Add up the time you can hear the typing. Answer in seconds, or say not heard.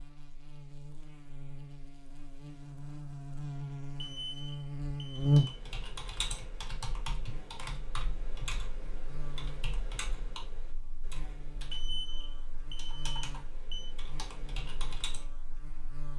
10 s.